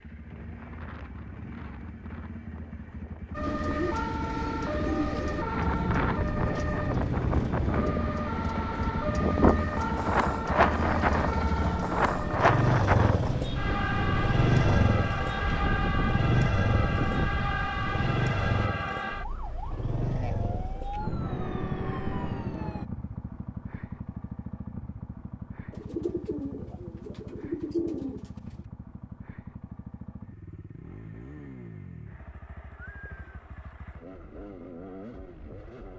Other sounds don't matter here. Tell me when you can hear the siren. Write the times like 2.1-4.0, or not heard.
3.3-22.9.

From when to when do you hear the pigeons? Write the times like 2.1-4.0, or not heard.
3.4-5.5, 25.7-28.4.